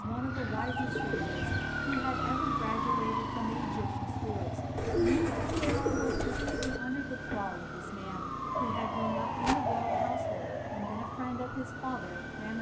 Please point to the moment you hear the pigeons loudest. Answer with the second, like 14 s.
5 s.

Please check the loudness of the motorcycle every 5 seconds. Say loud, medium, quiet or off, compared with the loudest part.
loud, medium, medium.